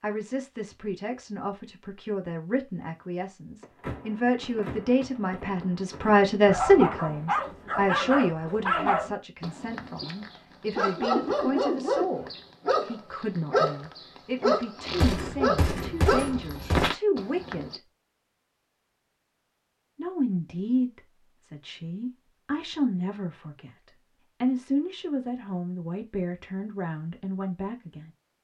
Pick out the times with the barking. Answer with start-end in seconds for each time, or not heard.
6.5-17.8.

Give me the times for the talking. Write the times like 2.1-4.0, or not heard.
0.0-17.8, 19.9-28.1.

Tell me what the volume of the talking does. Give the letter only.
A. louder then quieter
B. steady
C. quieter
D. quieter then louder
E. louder
A.